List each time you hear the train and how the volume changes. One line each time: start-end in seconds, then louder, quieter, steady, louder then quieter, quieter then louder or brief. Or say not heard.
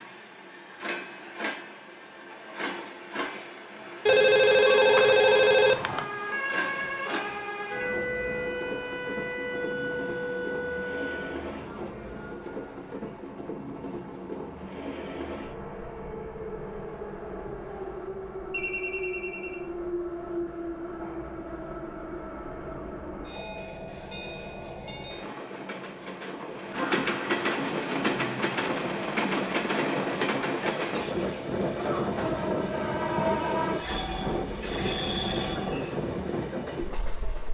0.0-37.4 louder.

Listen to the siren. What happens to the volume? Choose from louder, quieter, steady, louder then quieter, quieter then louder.
steady.